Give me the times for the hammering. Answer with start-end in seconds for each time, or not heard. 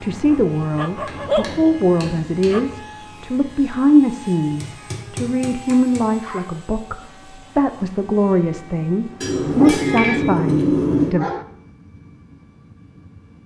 0.9-2.7, 4.6-6.0, 9.2-11.2.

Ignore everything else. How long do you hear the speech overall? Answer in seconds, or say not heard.
11 s.